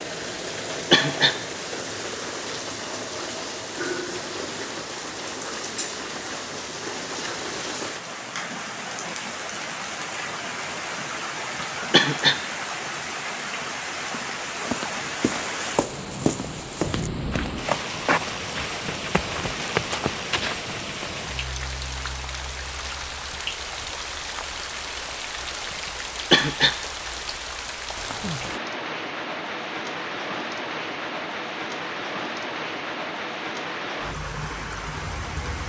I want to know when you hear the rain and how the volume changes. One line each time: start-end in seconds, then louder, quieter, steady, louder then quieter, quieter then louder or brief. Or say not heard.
0.0-35.6 steady.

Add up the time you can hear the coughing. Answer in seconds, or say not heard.
2 s.